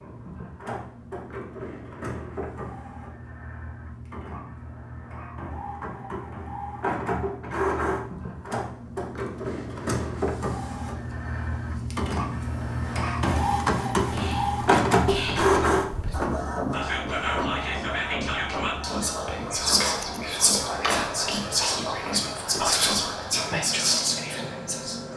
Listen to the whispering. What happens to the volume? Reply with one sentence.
The volume of the whispering goes up.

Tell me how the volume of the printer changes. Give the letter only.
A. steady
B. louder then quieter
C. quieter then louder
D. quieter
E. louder
B.